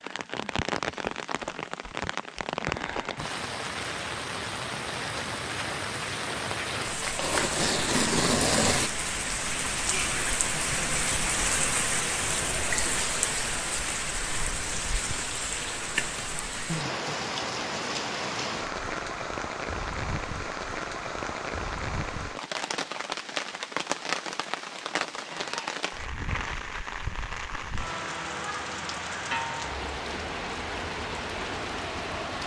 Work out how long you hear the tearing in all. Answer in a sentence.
You can hear the tearing for 2 seconds altogether.